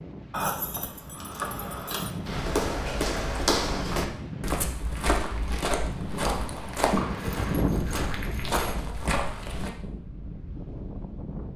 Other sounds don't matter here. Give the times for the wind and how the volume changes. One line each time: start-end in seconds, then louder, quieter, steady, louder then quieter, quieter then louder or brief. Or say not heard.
0.0-11.5 louder then quieter.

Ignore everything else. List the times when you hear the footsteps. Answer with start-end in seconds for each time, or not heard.
2.2-9.7.